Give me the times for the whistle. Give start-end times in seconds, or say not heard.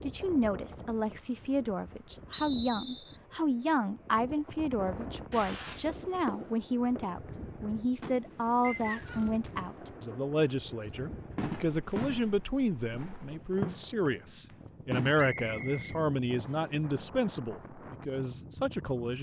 2.3-3.2, 8.6-9.3, 15.2-16.7.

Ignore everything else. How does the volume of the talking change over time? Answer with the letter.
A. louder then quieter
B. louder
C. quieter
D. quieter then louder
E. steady
E.